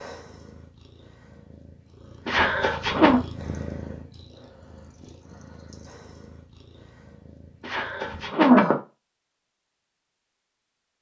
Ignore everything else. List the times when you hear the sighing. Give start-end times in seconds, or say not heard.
2.2-3.2, 7.6-8.8.